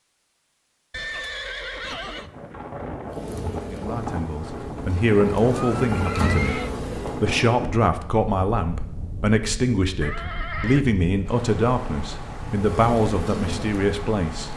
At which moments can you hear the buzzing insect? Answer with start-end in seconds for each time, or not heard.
3.1-7.2, 12.5-14.5.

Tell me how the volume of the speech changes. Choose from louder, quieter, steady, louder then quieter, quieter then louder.
steady.